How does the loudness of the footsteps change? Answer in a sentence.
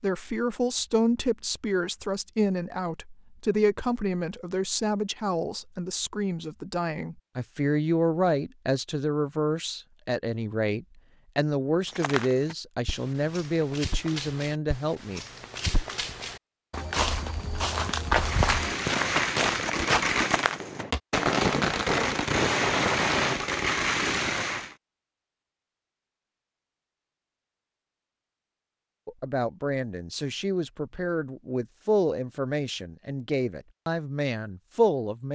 The loudness of the footsteps goes up.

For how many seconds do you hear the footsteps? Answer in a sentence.
You can hear the footsteps for 9 seconds altogether.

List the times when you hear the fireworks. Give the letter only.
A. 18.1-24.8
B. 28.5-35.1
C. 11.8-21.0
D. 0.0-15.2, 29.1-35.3
A.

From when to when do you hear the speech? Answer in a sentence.
The speech can be heard from 0.0 to 15.2 s and from 29.1 to 35.3 s.